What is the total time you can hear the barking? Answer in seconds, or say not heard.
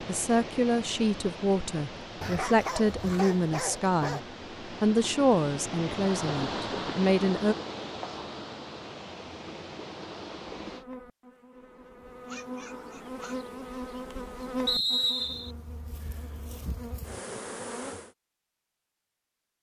3 s.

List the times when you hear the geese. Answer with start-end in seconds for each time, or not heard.
not heard.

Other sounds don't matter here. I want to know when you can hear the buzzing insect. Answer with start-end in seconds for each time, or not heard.
10.6-18.1.